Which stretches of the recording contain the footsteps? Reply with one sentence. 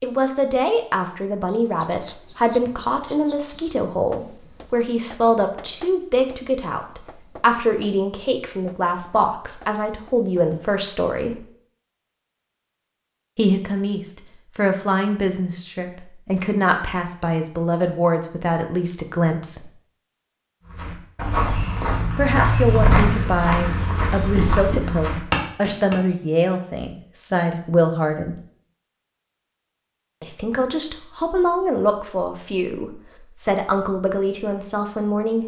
You can hear the footsteps from 20.6 to 25.9 s.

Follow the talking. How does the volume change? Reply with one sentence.
The volume of the talking stays about the same.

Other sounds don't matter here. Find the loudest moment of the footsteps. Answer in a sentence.
The volume of the footsteps peaks at 23 seconds.